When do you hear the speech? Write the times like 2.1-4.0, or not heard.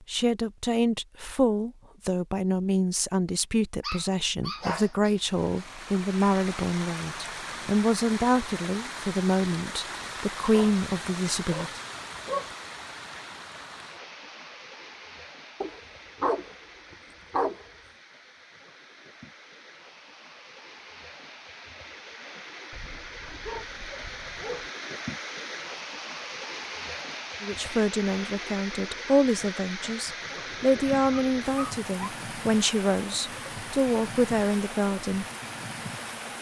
0.1-11.8, 27.4-35.2.